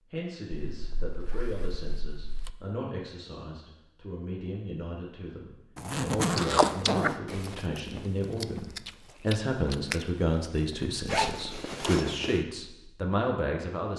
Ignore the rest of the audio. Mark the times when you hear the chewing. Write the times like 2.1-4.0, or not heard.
6.2-11.8.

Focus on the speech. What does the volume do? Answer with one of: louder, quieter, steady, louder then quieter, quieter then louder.
louder.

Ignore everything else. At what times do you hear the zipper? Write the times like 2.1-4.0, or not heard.
0.8-2.5, 5.8-7.2, 11.1-12.4.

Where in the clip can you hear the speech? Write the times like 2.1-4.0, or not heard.
0.1-13.9.